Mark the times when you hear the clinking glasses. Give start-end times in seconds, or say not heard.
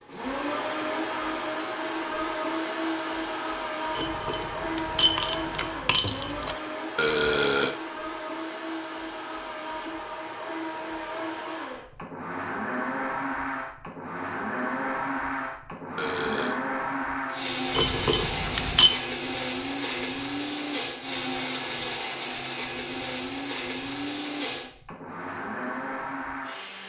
4.0-6.5, 17.7-18.9.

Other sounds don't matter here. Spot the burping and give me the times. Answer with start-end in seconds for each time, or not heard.
7.0-7.8, 15.9-16.6.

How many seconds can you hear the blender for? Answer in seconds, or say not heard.
27 s.